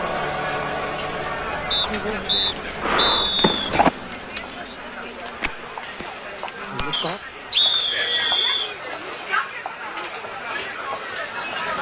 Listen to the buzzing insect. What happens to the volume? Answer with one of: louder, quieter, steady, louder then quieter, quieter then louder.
louder then quieter.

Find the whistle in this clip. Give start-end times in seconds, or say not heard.
1.7-3.7, 6.9-8.8.